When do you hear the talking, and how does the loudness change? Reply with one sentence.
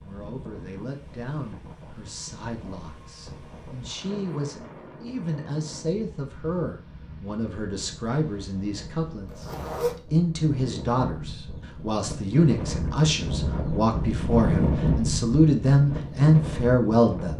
You can hear the talking from 0.0 to 17.3 s, getting louder.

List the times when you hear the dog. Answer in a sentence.
You can't hear the dog here.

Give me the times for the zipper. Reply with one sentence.
The zipper can be heard from 9.2 to 9.9 s.